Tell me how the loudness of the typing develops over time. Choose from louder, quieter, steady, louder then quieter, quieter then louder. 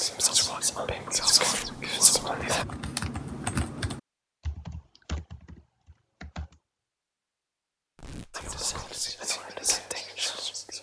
louder then quieter.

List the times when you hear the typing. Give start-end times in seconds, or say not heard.
0.0-6.6.